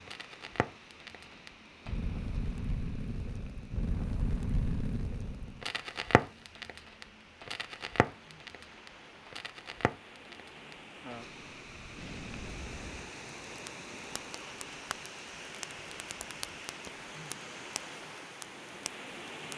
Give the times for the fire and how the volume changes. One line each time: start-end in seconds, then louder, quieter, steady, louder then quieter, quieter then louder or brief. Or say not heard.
0.1-19.5 quieter.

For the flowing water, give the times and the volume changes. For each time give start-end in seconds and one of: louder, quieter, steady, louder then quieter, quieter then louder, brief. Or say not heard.
0.0-19.5 louder.